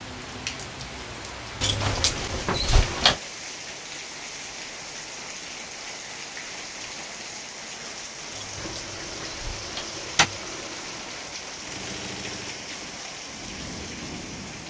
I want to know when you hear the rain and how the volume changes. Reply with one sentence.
You can hear the rain from 0.0 to 14.6 s, at a steady volume.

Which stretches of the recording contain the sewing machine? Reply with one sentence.
You can hear the sewing machine from 8.6 to 13.1 s.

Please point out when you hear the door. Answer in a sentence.
The door can be heard from 1.6 to 3.2 s and from 8.3 to 10.3 s.